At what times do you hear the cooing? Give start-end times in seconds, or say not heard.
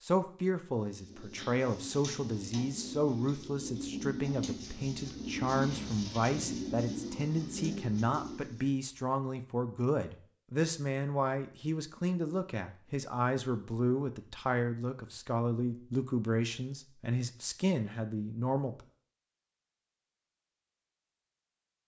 0.8-8.7.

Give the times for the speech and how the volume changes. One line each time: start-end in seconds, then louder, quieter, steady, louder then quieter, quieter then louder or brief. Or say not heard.
0.0-18.8 steady.